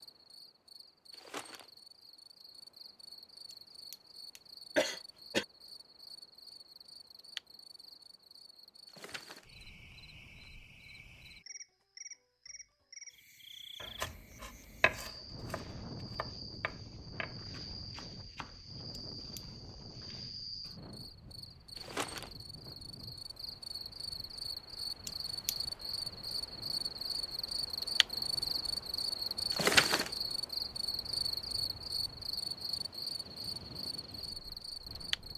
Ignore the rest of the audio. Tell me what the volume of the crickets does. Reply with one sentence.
The loudness of the crickets goes up.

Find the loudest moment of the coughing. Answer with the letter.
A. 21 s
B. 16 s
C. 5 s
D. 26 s
C.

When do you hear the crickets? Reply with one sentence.
The crickets can be heard from 0.0 to 35.3 s.